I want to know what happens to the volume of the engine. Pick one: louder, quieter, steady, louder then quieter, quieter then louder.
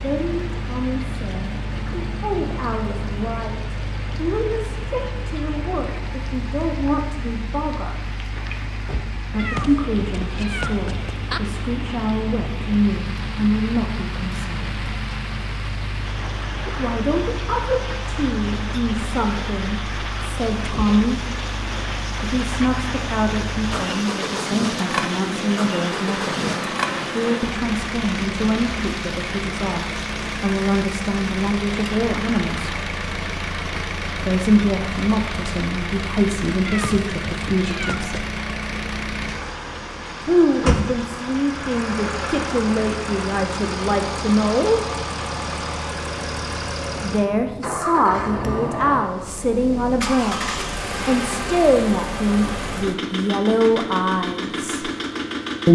louder.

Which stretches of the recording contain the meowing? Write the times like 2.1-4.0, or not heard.
9.3-11.4, 36.6-38.1.